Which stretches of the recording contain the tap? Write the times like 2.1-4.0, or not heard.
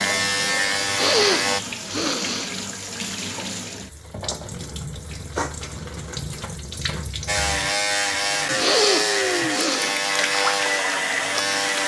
0.0-11.8.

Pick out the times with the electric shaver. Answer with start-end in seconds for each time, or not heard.
0.0-1.6, 7.2-11.8.